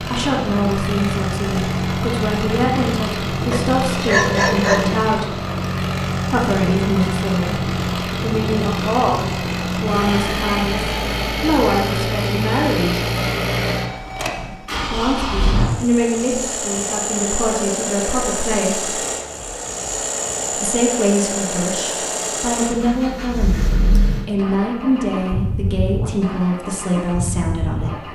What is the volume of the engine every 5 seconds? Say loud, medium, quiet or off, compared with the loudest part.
loud, loud, loud, loud, loud, medium.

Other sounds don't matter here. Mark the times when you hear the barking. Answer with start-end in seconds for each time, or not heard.
3.5-5.0.